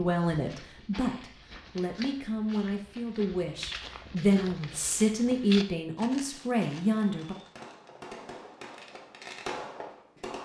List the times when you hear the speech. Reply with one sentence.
You can hear the speech from 0.0 to 7.3 s.